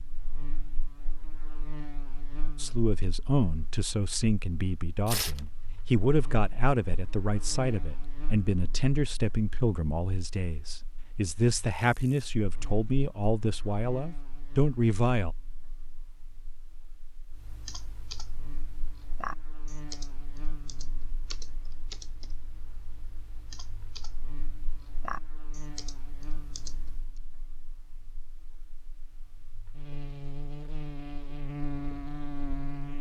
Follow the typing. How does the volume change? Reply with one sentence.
The volume of the typing goes down, then up.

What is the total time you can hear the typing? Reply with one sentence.
You can hear the typing for 10 seconds altogether.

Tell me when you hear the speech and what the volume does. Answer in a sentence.
The speech can be heard from 2.5 to 15.3 s, at a steady volume.